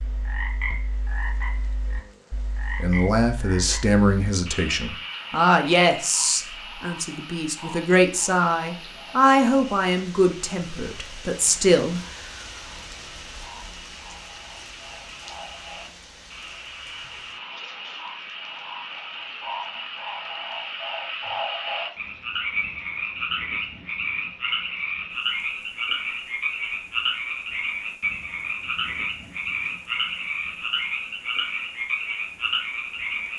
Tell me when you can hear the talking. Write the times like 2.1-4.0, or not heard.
2.8-12.0.